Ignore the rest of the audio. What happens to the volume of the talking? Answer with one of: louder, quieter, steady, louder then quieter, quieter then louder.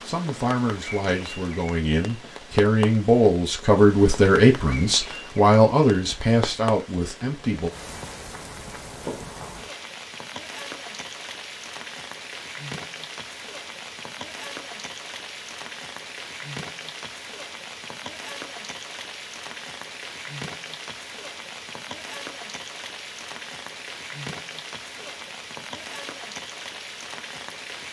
louder then quieter.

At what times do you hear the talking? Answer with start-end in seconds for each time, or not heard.
0.1-7.7.